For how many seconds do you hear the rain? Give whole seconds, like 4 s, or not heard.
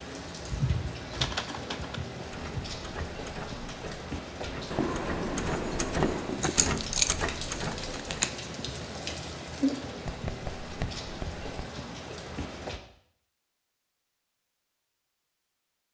13 s.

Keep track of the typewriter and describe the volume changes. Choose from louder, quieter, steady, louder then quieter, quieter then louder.
louder.